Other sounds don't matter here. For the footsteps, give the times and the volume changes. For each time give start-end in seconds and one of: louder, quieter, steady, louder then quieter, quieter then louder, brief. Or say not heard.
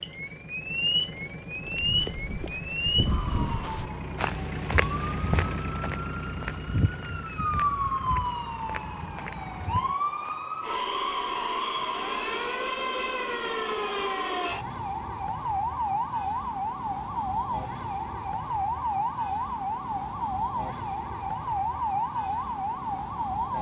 1.6-10.3 quieter.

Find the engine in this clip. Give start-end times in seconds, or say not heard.
0.0-10.0.